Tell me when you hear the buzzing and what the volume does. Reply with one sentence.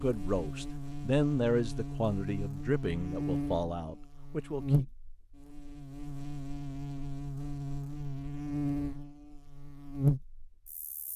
You can hear the buzzing from 0.0 to 11.1 s, getting louder.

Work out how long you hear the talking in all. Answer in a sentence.
The talking can be heard for 5 seconds in total.